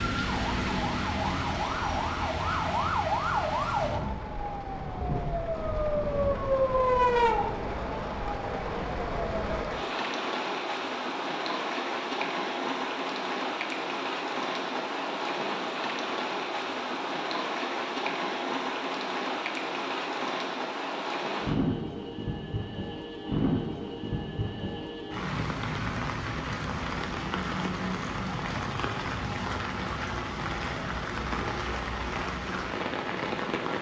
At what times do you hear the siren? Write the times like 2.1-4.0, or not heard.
0.1-9.5.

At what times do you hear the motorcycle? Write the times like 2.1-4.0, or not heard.
not heard.